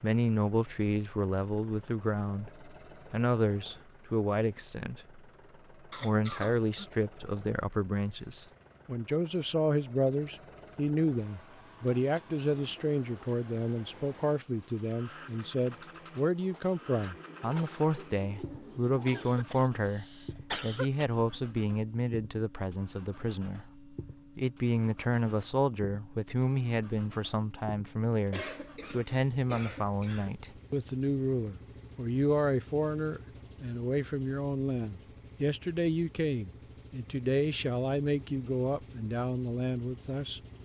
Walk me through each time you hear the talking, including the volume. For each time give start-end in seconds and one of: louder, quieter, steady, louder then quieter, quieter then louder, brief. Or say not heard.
0.0-5.2 quieter then louder
5.8-40.4 steady.